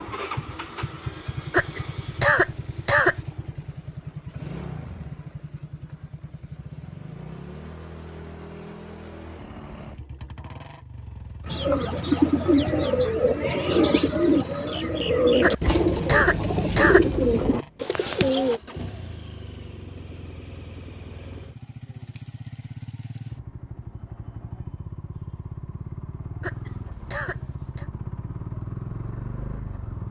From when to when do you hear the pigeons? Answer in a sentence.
The pigeons can be heard from 11.4 to 18.6 s.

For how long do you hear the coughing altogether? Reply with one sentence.
You can hear the coughing for 5 seconds altogether.